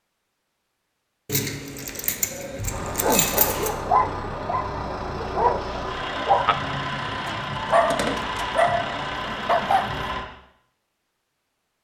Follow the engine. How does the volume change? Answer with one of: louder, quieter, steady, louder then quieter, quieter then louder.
steady.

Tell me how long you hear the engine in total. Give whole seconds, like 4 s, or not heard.
8 s.